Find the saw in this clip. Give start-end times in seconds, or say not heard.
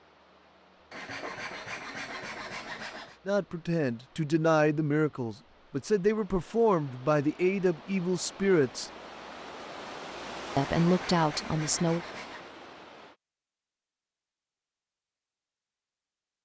0.9-3.2, 10.6-12.5.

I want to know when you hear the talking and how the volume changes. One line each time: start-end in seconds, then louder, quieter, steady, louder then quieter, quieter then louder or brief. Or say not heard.
3.2-8.9 steady
10.6-12.0 brief.